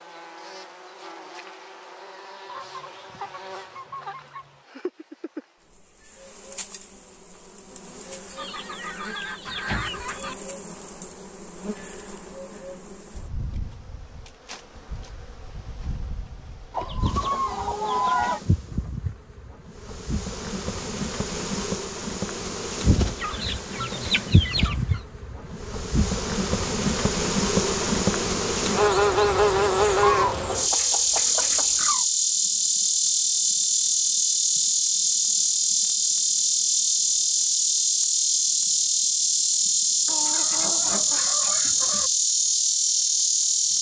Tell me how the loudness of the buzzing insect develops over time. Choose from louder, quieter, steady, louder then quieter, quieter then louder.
louder.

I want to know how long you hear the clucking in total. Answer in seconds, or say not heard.
12 s.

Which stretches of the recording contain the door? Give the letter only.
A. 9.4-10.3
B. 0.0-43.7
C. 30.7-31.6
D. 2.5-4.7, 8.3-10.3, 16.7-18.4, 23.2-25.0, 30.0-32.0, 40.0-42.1
A.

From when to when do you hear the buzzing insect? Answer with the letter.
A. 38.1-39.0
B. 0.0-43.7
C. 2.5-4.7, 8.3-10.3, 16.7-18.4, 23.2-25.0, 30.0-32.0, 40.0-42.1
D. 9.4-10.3
B.